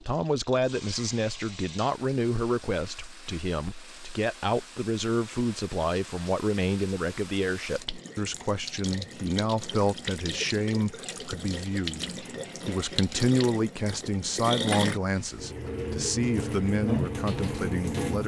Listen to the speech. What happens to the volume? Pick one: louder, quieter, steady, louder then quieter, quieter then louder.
steady.